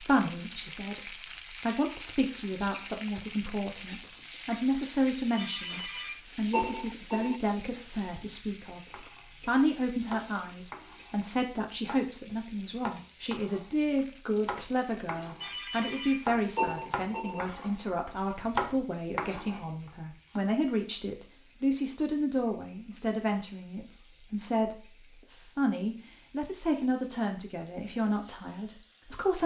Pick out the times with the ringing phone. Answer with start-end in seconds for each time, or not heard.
5.3-7.4, 15.4-17.4.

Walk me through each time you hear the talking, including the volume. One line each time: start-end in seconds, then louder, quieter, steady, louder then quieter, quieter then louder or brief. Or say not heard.
0.0-29.4 steady.